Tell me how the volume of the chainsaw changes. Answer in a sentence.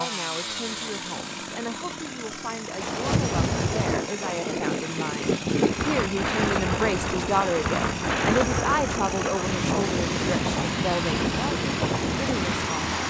The volume of the chainsaw stays about the same.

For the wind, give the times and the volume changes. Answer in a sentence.
The wind can be heard from 2.8 to 13.0 s, at a steady volume.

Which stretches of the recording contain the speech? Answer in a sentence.
The speech can be heard from 0.0 to 12.9 s.